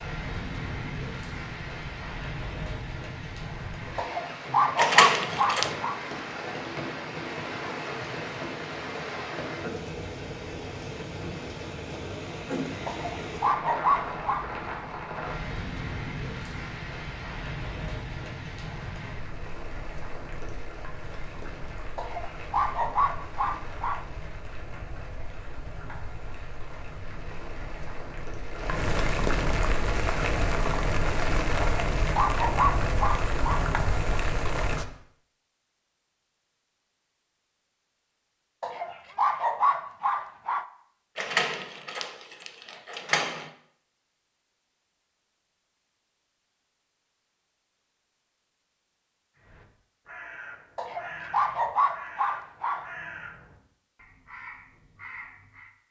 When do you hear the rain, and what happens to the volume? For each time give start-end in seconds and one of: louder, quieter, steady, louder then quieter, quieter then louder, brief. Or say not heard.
0.0-34.9 quieter then louder.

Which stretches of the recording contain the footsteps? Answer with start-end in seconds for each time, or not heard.
not heard.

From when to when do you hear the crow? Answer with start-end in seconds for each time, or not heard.
49.4-55.7.